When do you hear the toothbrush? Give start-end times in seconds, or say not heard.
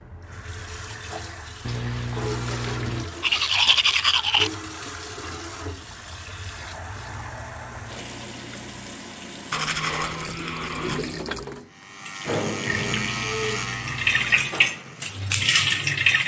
3.2-4.5, 9.5-11.2.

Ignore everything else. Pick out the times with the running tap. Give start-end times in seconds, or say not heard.
0.0-16.2.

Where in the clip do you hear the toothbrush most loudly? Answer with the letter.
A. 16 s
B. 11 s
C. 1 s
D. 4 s
D.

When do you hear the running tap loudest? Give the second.
16 s.